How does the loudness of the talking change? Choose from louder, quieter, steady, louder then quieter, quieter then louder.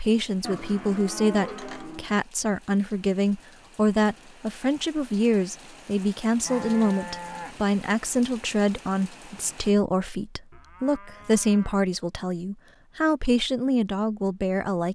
steady.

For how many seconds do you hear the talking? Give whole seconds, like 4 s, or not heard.
15 s.